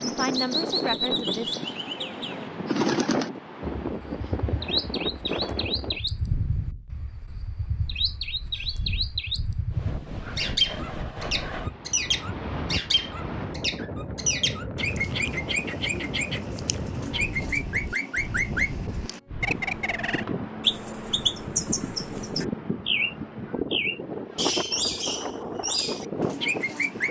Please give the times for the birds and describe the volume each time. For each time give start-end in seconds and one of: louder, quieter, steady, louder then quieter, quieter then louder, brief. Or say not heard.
0.0-27.0 steady.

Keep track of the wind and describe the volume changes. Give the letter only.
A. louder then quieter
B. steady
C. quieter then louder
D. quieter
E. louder
C.